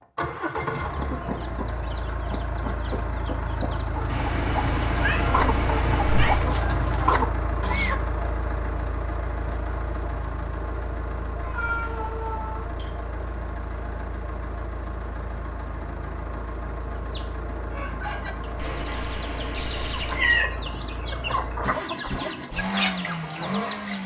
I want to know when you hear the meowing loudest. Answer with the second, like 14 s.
20 s.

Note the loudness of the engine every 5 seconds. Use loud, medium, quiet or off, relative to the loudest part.
loud, loud, medium, medium, loud.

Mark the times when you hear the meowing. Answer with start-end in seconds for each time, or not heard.
4.0-6.4, 11.4-13.1, 18.6-20.4.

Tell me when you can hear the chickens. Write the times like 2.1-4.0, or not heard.
0.8-8.0, 16.9-24.0.